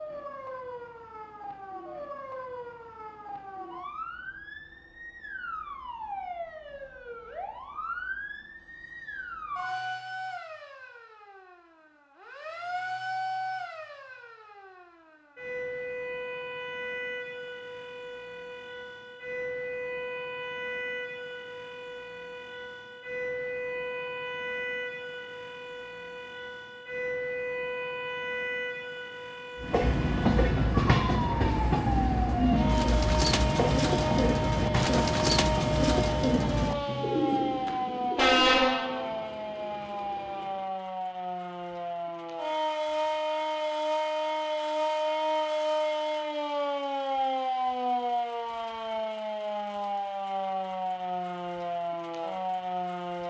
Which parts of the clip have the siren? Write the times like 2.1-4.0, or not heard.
0.0-53.2.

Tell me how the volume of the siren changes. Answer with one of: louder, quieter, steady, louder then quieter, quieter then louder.
louder.